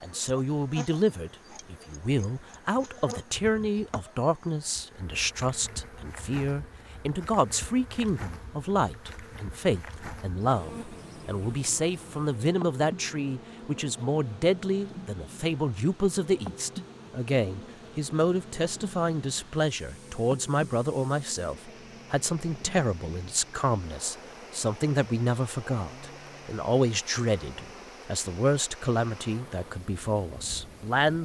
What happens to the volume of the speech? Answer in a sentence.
The loudness of the speech stays about the same.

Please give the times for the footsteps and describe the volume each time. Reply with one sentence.
You can't hear the footsteps here.